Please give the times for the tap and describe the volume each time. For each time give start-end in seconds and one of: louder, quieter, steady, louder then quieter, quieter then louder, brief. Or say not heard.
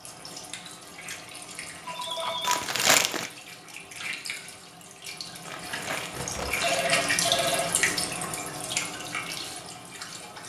0.0-10.4 louder then quieter.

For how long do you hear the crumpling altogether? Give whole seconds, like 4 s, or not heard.
2 s.